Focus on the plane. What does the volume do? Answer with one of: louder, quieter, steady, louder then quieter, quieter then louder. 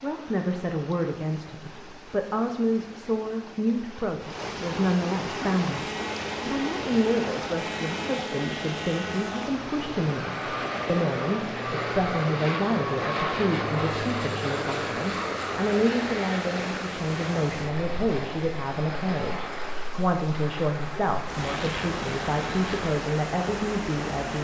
louder then quieter.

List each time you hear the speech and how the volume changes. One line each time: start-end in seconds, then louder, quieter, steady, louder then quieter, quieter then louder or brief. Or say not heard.
0.0-24.3 steady.